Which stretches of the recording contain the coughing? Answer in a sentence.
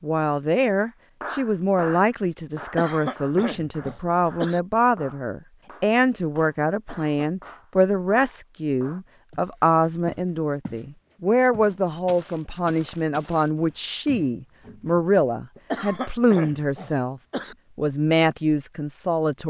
You can hear the coughing from 2.6 to 4.6 s, from 6.8 to 7.3 s and from 15.6 to 17.6 s.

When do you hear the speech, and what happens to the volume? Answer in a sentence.
You can hear the speech from 0.0 to 19.4 s, at a steady volume.